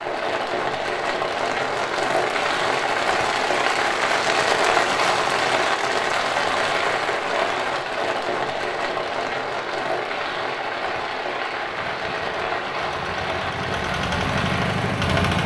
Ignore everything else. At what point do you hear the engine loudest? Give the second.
15 s.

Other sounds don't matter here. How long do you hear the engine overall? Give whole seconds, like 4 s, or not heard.
4 s.